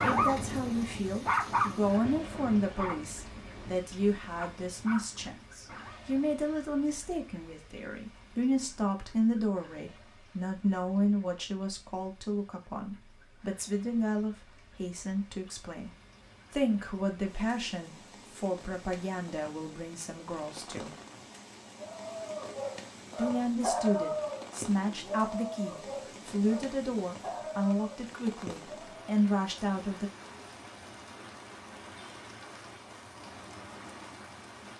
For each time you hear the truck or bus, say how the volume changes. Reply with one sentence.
The truck or bus can't be heard in this clip.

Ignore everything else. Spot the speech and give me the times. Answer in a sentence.
The speech can be heard from 0.0 to 15.9 s, from 16.5 to 20.9 s and from 23.1 to 30.1 s.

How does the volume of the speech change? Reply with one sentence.
The volume of the speech stays about the same.